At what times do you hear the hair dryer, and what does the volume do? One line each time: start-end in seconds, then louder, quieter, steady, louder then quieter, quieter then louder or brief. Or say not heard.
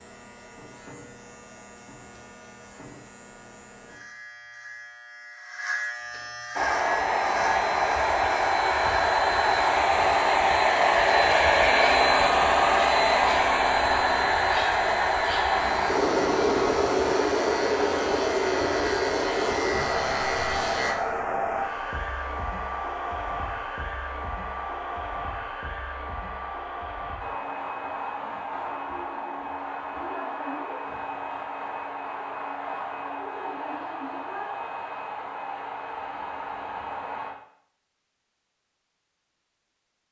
6.5-37.4 quieter.